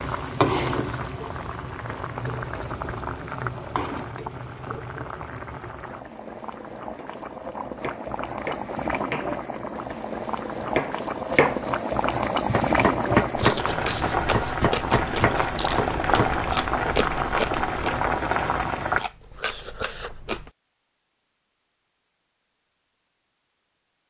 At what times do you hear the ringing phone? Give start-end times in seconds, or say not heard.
not heard.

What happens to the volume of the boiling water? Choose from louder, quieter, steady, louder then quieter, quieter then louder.
quieter then louder.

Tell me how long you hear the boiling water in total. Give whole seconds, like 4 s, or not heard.
19 s.